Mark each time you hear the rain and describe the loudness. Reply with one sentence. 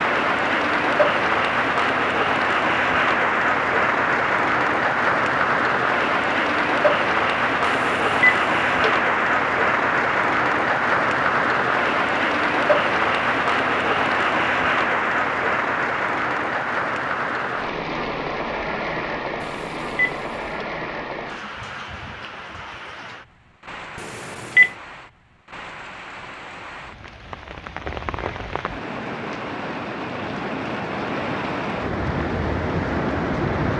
You can hear the rain from 0.0 to 33.7 s, getting quieter then louder.